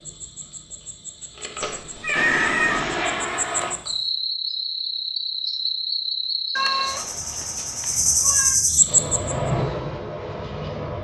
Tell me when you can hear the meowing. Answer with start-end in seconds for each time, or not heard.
1.6-2.8, 6.5-8.6.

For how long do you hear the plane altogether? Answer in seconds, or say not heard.
4 s.